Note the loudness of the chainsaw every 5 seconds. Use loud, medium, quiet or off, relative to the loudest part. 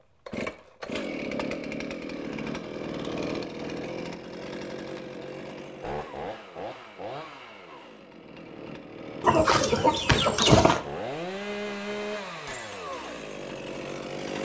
loud, medium, loud.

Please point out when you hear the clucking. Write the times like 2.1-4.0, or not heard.
9.2-10.8.